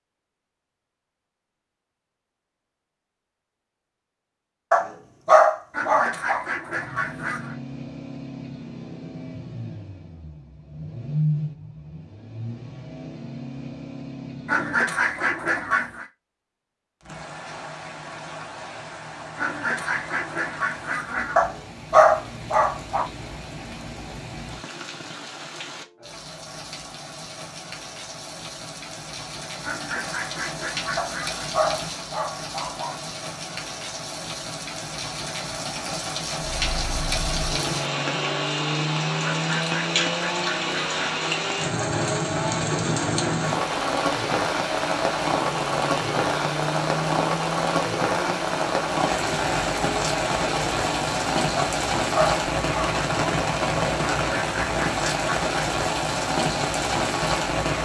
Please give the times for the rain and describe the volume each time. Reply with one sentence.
You can hear the rain from 17.0 to 57.8 s, getting louder.